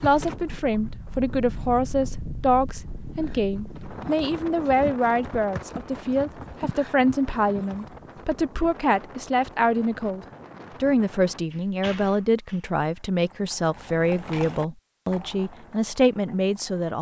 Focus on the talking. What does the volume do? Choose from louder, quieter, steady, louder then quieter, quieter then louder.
steady.